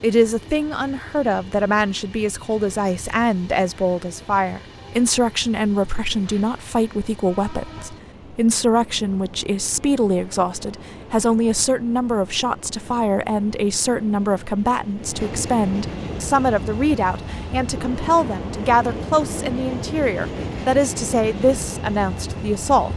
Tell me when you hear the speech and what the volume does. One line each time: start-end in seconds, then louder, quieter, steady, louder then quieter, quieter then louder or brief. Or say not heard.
0.0-22.9 steady.